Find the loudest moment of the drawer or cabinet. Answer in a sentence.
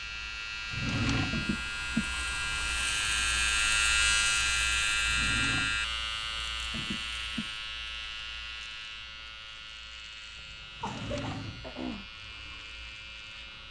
The volume of the drawer or cabinet peaks at 1 second.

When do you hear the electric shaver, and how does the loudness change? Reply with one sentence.
You can hear the electric shaver from 0.0 to 13.6 s, getting louder then quieter.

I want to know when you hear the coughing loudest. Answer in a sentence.
The volume of the coughing peaks at 2 seconds.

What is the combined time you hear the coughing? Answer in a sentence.
You can hear the coughing for 3 seconds altogether.